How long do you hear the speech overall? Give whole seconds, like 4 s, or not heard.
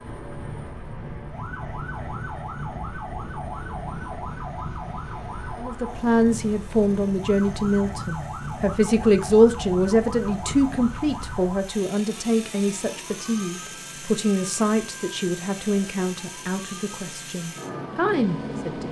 13 s.